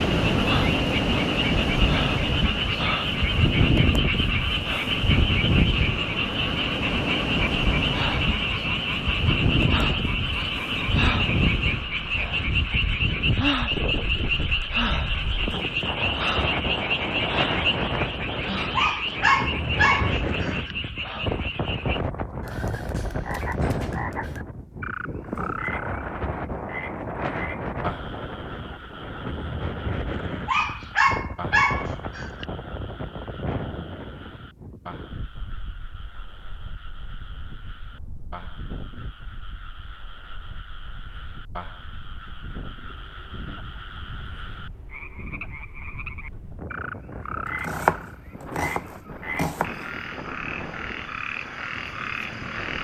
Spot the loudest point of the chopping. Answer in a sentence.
The loudest moment of the chopping is at 48 seconds.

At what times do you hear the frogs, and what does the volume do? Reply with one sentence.
You can hear the frogs from 0.0 to 52.7 s, getting quieter then louder.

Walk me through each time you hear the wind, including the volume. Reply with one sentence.
You can hear the wind from 0.0 to 52.7 s, getting quieter.